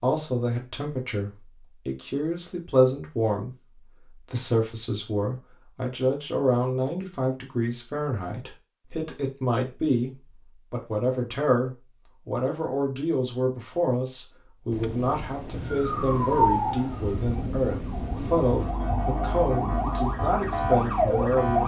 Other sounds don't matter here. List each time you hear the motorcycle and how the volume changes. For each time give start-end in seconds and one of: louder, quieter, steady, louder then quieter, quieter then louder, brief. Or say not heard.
not heard.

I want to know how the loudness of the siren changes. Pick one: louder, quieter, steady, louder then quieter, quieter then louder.
quieter then louder.